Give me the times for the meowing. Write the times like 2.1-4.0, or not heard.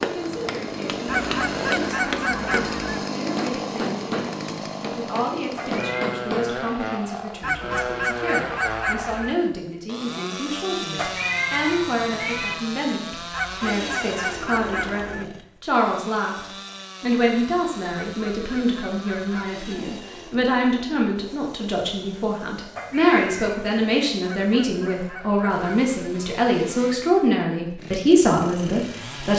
5.5-6.0, 10.9-12.6, 22.8-24.1.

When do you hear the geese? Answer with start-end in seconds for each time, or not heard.
1.1-3.0, 7.4-9.3, 13.3-15.2, 17.9-19.9, 24.2-25.9.